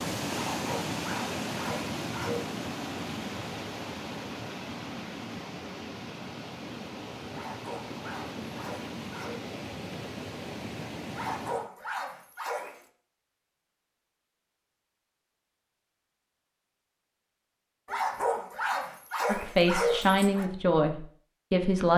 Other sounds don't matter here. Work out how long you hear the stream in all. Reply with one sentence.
The stream can be heard for 12 seconds in total.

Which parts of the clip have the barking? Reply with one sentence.
The barking can be heard from 0.3 to 2.5 s, from 7.3 to 9.4 s, from 11.1 to 12.8 s and from 17.9 to 20.5 s.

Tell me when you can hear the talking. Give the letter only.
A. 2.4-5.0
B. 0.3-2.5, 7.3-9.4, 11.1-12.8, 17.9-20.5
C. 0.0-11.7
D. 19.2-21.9
D.